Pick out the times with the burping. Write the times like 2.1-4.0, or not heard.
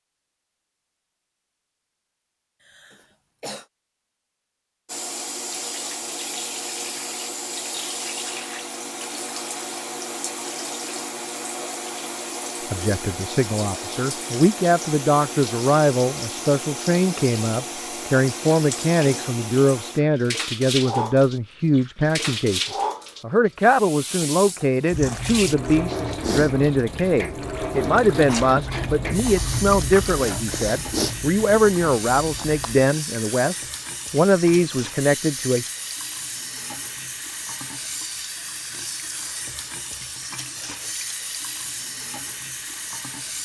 not heard.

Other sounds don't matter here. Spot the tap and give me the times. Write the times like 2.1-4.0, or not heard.
4.8-43.4.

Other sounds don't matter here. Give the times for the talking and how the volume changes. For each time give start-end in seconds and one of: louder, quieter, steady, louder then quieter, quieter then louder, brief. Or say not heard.
12.7-35.6 steady.